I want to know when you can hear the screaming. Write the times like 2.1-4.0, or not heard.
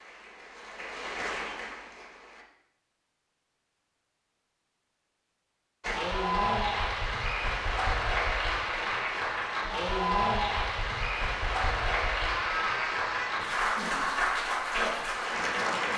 12.3-13.3.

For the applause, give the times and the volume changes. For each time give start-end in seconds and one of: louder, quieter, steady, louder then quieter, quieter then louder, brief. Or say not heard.
0.0-2.5 brief
5.8-15.9 steady.